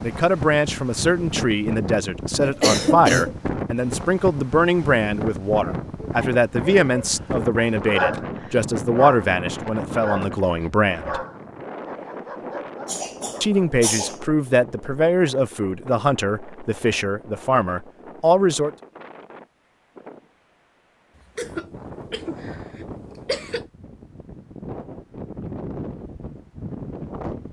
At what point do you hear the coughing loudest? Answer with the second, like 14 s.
3 s.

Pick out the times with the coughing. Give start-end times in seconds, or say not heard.
2.4-3.4, 12.8-14.2, 21.4-23.6.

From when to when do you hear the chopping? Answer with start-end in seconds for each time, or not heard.
not heard.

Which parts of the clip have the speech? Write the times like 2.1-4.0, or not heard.
0.0-11.2, 13.4-18.7.